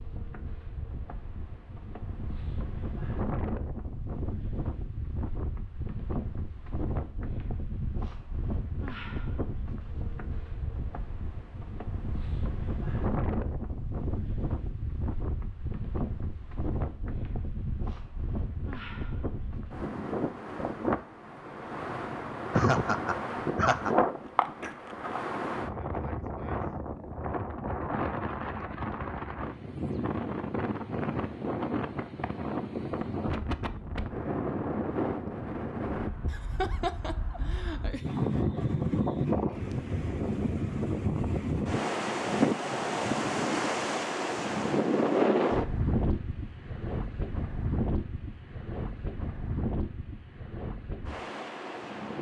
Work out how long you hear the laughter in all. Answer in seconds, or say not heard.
3 s.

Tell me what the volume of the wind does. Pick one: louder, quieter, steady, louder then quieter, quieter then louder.
louder.